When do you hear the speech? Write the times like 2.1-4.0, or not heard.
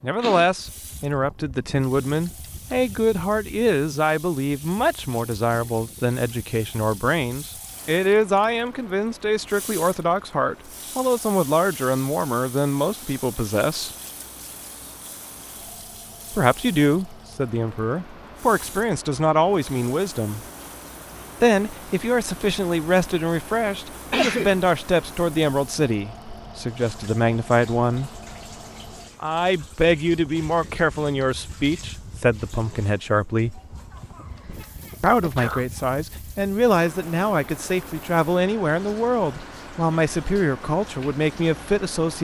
0.0-13.9, 16.3-20.4, 21.4-28.1, 29.2-33.6, 35.0-42.1.